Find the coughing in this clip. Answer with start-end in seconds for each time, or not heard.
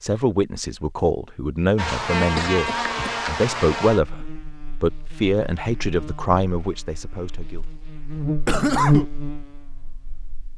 2.4-3.1, 8.4-9.1.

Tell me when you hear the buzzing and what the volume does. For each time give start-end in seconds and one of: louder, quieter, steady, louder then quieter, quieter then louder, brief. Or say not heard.
1.8-10.5 quieter then louder.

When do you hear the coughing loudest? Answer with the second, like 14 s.
9 s.